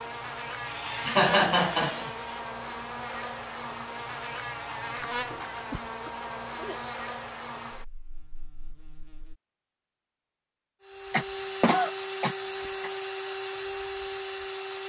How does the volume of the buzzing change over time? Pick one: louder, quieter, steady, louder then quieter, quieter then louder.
quieter.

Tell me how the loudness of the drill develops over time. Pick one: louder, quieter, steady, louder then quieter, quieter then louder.
steady.